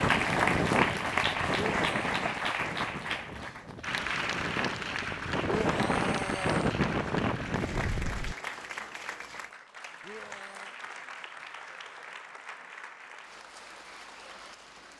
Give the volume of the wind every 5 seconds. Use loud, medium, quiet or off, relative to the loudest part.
loud, loud, off.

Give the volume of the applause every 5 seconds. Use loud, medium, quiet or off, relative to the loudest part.
loud, medium, quiet.